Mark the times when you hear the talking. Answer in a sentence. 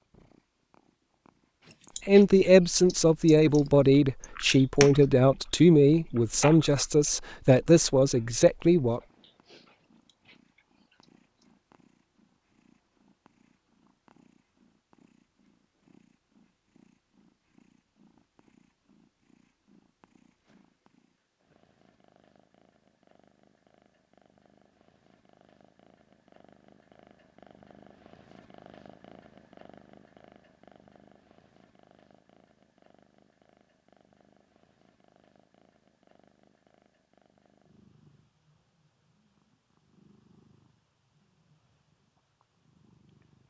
You can hear the talking from 2.0 to 9.0 s.